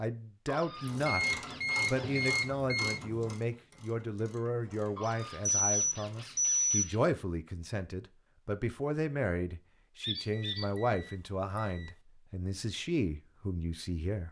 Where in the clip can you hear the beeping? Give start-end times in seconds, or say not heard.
1.1-3.0, 5.5-6.9, 10.3-11.9.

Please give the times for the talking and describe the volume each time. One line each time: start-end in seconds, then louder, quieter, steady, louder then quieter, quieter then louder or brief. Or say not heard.
0.0-14.2 steady.